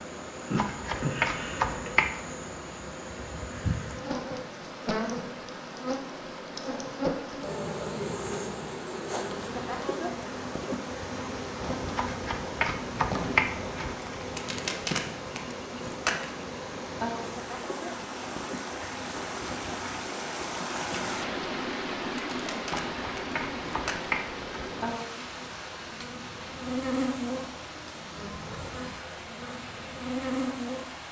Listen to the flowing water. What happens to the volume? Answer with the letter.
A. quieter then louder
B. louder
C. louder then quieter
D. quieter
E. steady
C.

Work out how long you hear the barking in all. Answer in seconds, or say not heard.
not heard.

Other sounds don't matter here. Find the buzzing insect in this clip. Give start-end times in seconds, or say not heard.
0.0-31.0.